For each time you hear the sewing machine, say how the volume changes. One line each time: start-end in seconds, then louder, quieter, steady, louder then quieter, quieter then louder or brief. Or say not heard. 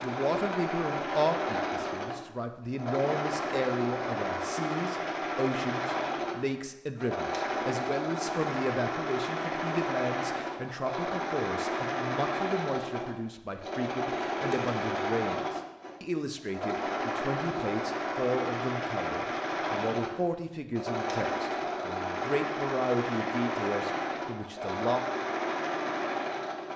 0.0-26.7 steady.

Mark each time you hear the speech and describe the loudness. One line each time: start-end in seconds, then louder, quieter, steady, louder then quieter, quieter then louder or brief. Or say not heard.
0.0-25.1 steady.